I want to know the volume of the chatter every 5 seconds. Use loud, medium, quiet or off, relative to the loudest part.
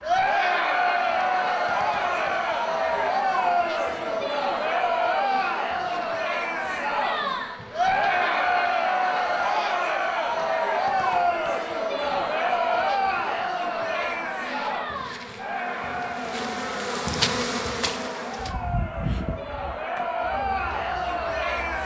loud, loud, loud, medium, loud.